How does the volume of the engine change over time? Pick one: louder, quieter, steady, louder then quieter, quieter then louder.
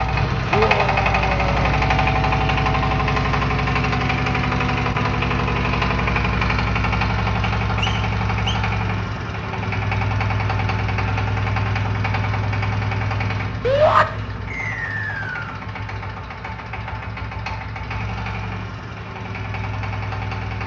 quieter.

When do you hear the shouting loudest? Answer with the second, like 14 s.
14 s.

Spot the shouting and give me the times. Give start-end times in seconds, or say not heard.
0.5-1.8, 13.6-14.1.